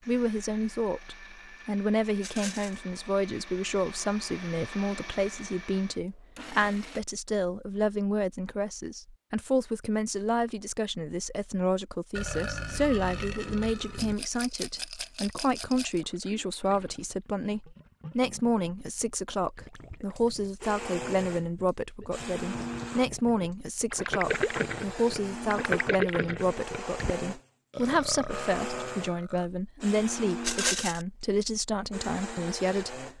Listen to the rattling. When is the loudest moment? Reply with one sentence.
The volume of the rattling peaks at 31 seconds.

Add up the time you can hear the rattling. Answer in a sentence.
The rattling can be heard for 3 seconds in total.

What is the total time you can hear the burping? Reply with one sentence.
The burping can be heard for 4 seconds in total.